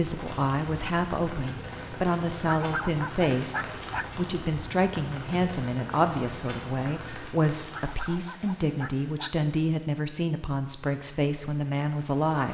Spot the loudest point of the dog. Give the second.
3 s.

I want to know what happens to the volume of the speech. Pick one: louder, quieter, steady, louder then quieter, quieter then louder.
steady.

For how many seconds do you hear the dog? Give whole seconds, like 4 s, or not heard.
3 s.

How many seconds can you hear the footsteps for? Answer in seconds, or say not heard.
not heard.